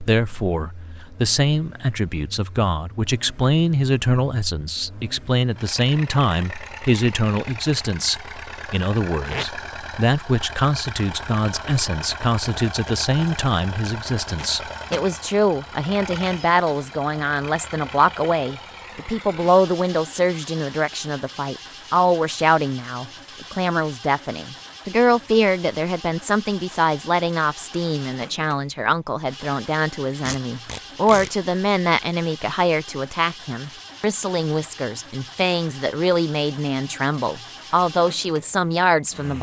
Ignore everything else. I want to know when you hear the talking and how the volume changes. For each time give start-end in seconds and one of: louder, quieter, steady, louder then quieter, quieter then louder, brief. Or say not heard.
0.0-39.3 steady.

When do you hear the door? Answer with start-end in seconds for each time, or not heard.
not heard.